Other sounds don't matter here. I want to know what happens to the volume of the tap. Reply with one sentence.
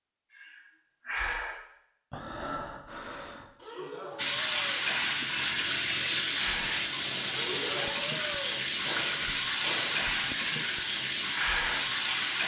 The loudness of the tap stays about the same.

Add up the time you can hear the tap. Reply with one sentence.
The tap can be heard for 8 seconds in total.